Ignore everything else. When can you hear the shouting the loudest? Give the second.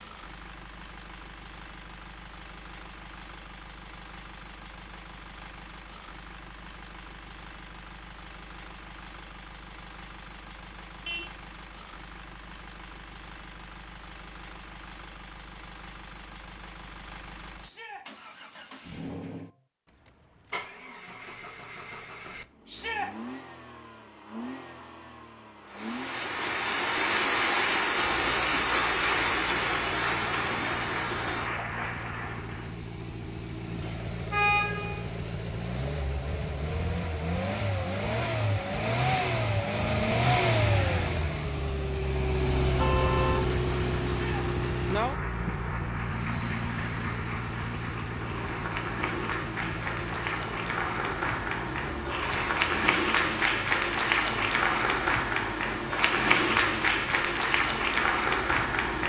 23 s.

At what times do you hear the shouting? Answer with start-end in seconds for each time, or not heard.
17.6-18.1, 22.6-23.1, 44.0-44.5.